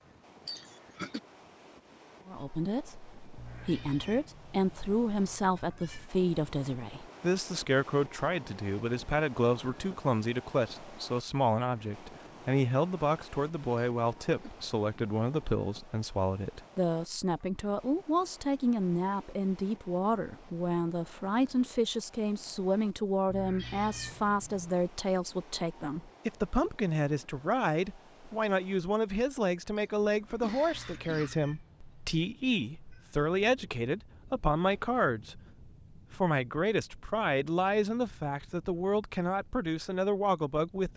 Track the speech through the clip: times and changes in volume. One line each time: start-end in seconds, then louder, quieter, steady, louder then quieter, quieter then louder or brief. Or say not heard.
2.2-40.9 steady.